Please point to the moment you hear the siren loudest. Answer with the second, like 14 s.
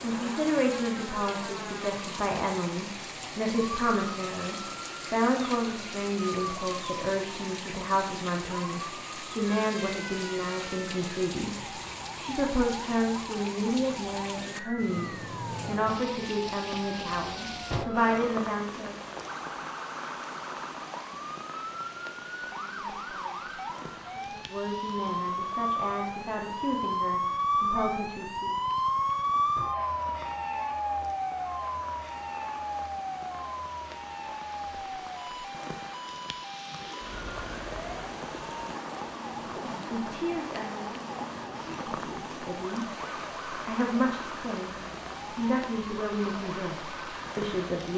29 s.